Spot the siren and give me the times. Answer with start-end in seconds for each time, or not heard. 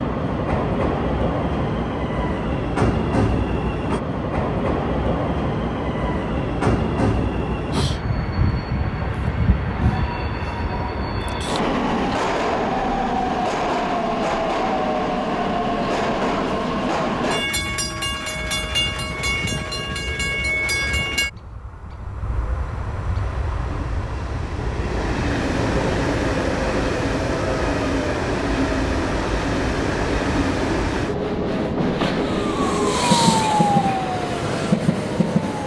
32.0-35.6.